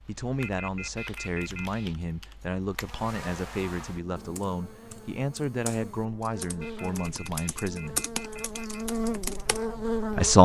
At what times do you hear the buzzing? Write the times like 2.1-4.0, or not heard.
2.8-10.3.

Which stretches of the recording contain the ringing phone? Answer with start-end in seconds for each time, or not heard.
0.4-1.9, 6.6-8.8.